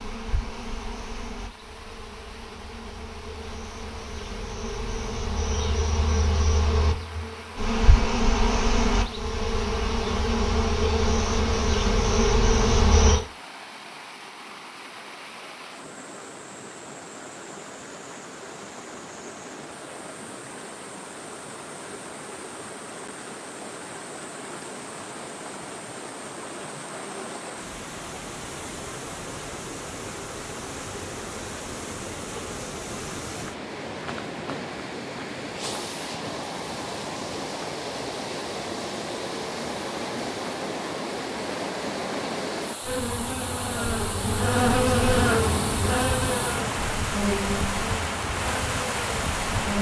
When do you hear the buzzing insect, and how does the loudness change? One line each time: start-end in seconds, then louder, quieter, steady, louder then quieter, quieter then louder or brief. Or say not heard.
0.0-13.2 louder
42.8-49.7 louder then quieter.